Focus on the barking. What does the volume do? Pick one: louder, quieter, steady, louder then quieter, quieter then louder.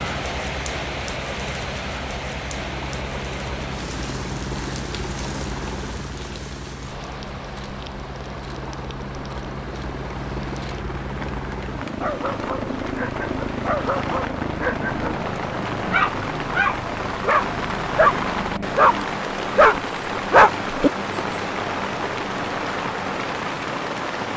louder.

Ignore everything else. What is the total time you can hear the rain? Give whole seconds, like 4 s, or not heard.
24 s.